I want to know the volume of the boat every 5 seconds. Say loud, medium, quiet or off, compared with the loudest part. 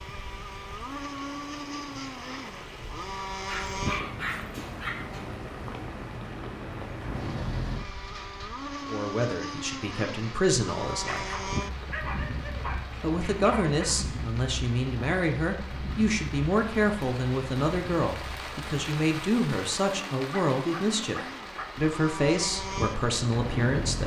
loud, loud, loud, medium, loud.